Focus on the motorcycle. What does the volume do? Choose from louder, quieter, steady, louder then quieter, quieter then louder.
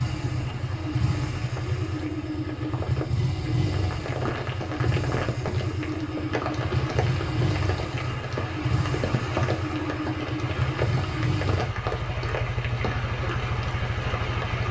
steady.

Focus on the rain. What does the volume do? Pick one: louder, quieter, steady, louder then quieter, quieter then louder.
louder.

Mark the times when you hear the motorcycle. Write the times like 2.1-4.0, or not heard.
0.0-14.6.